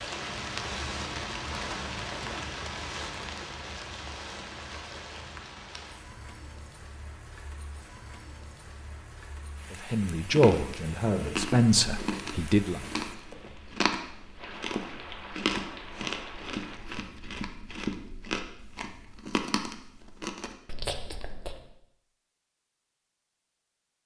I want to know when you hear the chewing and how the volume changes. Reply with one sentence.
The chewing can be heard from 10.3 to 21.7 s, at a steady volume.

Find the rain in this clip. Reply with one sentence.
The rain can be heard from 0.0 to 16.8 s.